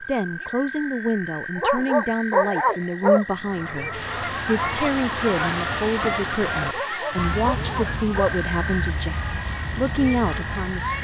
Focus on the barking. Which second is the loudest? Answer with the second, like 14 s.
3 s.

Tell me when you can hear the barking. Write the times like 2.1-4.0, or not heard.
1.6-3.2, 6.7-8.3.